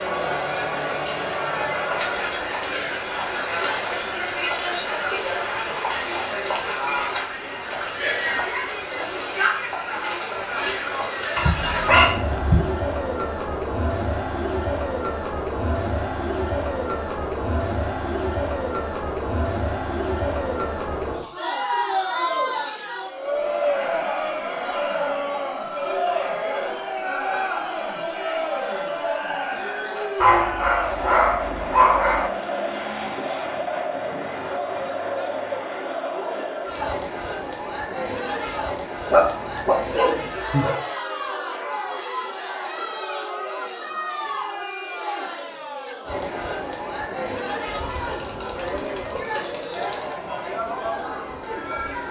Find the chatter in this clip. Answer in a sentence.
The chatter can be heard from 0.0 to 52.0 s.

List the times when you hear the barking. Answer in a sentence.
You can hear the barking from 11.3 to 12.6 s, from 30.2 to 32.3 s and from 39.1 to 40.8 s.